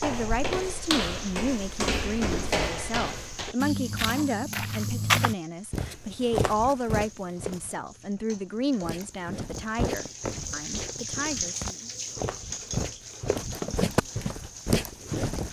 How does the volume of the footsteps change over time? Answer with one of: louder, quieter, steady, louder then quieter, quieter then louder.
quieter then louder.